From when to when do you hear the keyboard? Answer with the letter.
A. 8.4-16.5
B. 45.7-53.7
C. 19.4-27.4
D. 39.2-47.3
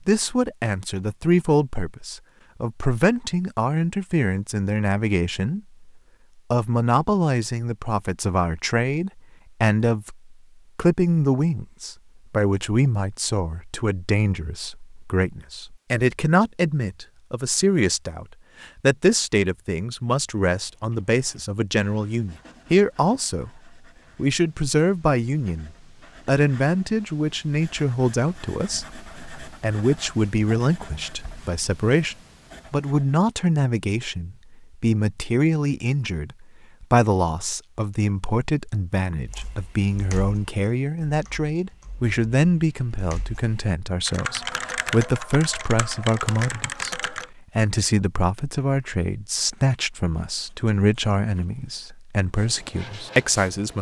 D.